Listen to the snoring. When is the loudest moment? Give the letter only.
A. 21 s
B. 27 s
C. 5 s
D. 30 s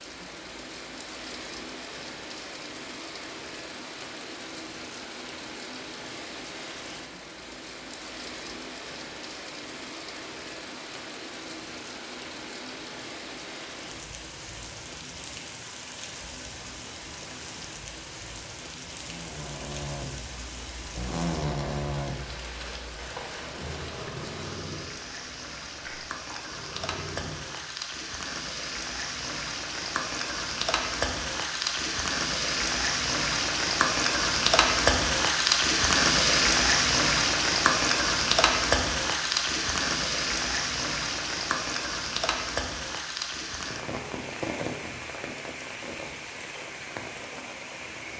A.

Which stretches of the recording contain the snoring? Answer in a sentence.
You can hear the snoring from 18.9 to 27.6 s.